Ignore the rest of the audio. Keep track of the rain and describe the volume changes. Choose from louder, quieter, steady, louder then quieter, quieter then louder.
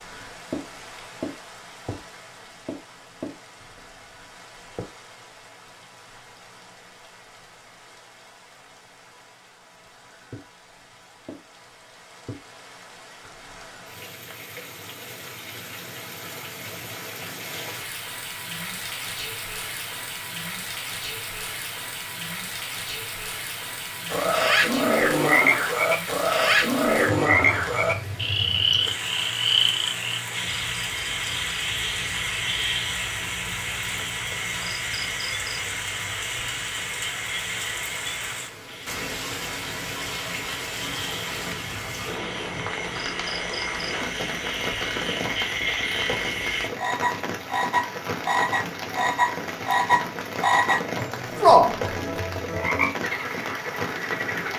louder.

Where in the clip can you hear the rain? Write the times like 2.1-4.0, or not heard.
0.0-54.5.